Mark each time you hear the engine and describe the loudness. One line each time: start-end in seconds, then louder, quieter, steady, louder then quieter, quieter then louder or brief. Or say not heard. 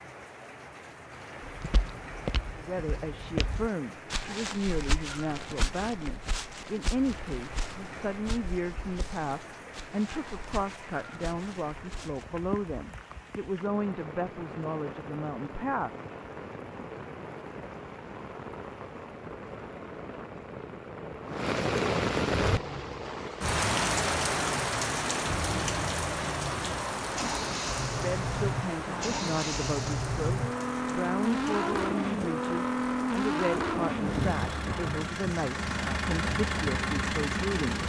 22.6-37.8 louder.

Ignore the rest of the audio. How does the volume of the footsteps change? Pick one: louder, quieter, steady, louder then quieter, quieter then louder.
quieter.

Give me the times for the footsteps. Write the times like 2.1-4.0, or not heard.
1.4-12.2.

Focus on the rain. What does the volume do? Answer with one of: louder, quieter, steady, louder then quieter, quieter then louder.
louder then quieter.